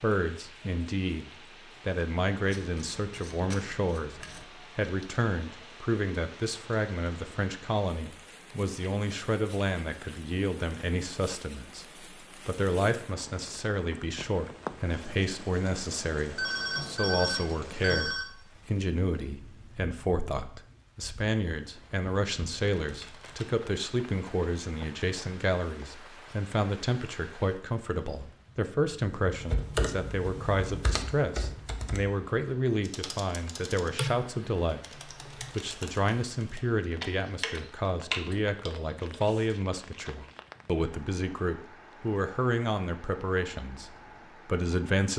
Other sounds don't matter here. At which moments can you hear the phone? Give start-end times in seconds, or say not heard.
16.4-18.2.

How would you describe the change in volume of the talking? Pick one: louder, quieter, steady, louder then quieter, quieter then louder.
steady.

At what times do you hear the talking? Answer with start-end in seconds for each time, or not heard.
0.0-35.0, 35.5-45.1.